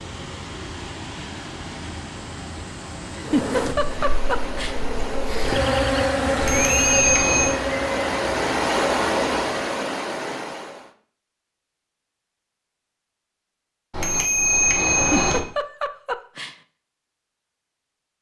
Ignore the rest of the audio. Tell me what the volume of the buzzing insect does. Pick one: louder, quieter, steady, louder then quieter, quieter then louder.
louder then quieter.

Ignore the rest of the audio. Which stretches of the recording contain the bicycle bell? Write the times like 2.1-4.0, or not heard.
6.3-7.5, 13.9-15.4.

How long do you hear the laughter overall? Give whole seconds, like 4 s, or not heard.
3 s.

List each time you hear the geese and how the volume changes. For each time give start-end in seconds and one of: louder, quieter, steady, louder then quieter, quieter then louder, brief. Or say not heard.
not heard.